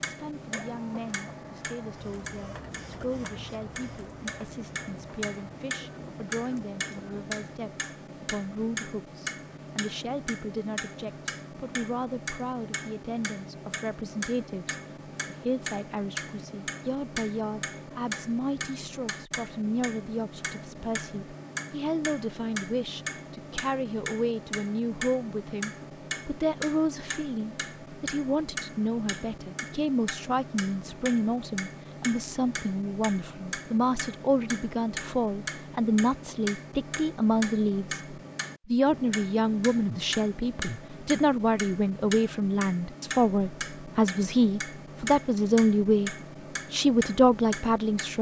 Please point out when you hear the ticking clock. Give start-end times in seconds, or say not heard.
0.0-48.1.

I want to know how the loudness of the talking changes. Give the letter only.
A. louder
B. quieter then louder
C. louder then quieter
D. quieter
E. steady
A.